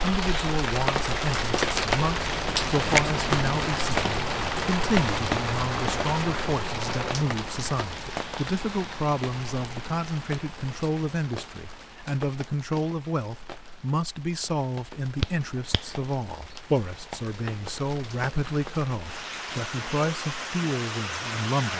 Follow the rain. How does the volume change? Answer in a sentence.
The volume of the rain goes down, then up.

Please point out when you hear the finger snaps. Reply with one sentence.
The finger snaps can be heard from 15.2 to 16.1 s.